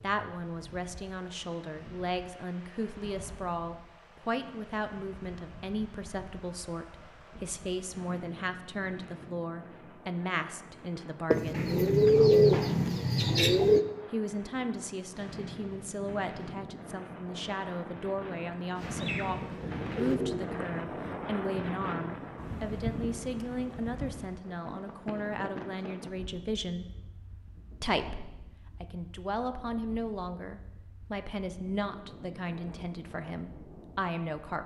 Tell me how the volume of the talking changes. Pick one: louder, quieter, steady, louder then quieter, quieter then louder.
steady.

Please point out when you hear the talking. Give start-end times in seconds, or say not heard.
0.0-11.8, 14.1-26.9, 27.8-34.6.